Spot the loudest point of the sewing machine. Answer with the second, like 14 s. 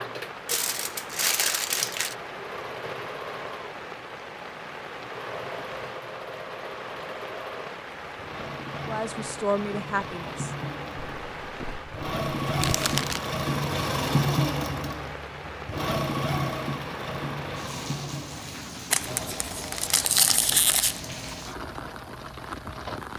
14 s.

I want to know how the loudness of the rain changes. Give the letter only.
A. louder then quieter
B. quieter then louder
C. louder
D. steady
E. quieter
D.